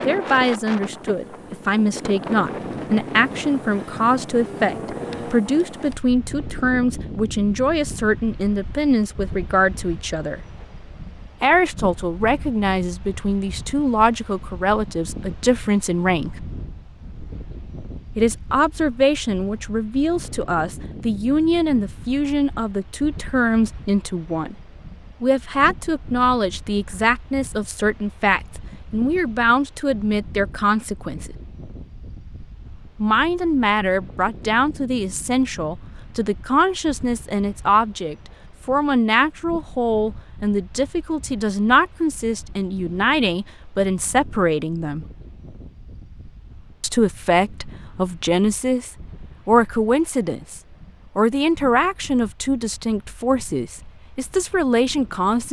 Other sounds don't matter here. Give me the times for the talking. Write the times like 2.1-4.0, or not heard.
0.1-10.4, 11.4-16.4, 18.1-24.6, 25.2-31.4, 33.0-45.0, 46.8-55.4.